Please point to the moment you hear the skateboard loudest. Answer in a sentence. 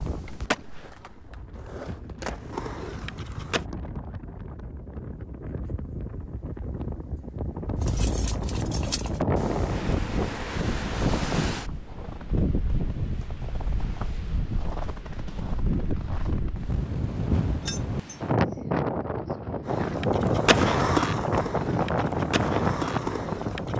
The volume of the skateboard peaks at 21 seconds.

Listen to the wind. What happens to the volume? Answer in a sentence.
The volume of the wind goes up.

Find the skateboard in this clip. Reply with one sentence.
You can hear the skateboard from 0.1 to 3.6 s and from 19.6 to 23.7 s.